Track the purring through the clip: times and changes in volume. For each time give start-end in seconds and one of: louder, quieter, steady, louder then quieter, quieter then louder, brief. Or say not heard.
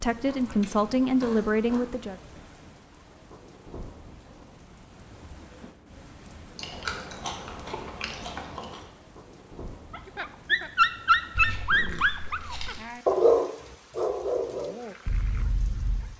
not heard.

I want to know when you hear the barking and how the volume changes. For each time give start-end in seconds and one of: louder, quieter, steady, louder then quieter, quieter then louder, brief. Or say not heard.
9.9-16.1 quieter.